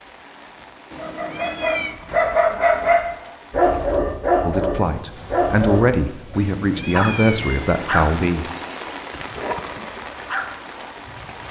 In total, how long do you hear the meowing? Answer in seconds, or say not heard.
3 s.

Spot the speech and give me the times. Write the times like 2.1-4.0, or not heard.
4.4-8.5.